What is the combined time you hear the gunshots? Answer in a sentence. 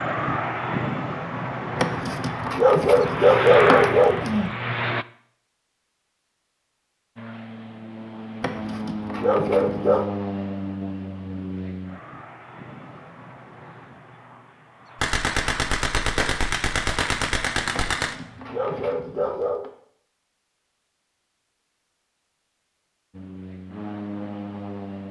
The gunshots can be heard for 3 seconds in total.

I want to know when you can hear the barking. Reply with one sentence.
You can hear the barking from 1.8 to 4.5 s, from 8.4 to 10.1 s and from 17.7 to 19.7 s.